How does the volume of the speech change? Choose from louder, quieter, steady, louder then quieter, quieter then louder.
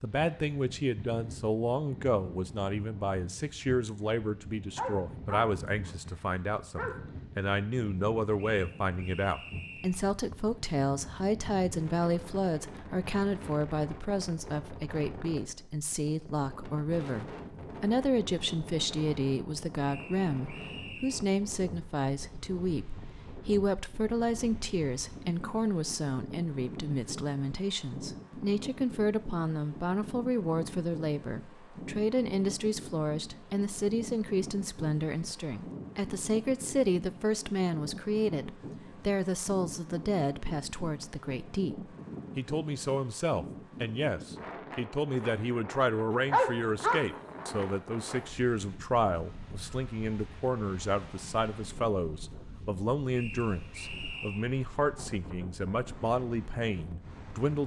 steady.